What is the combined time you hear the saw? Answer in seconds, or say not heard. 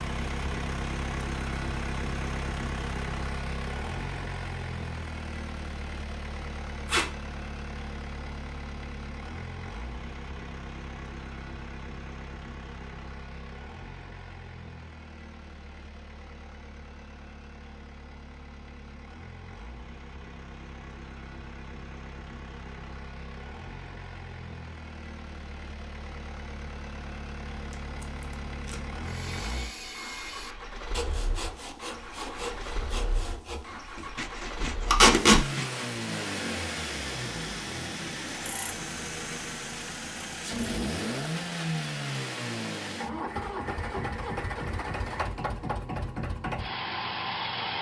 7 s.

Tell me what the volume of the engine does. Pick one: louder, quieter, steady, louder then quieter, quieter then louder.
quieter then louder.